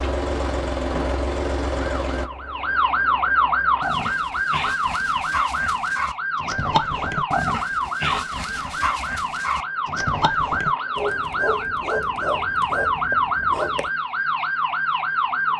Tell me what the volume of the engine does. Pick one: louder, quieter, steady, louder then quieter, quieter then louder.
quieter.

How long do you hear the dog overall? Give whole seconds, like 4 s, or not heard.
10 s.